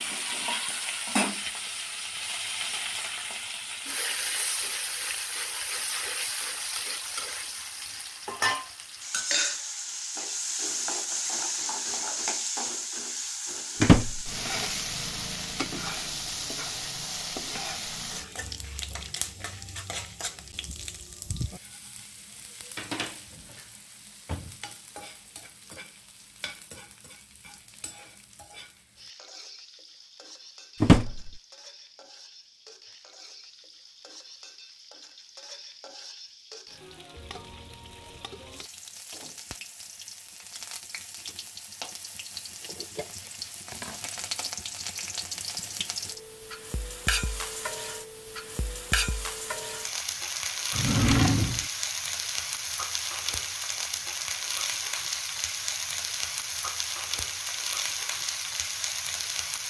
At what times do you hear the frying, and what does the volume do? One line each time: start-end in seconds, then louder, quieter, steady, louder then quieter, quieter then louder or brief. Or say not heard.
0.0-59.6 quieter then louder.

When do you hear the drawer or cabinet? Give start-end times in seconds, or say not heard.
13.8-14.3, 30.8-31.3, 50.7-51.6.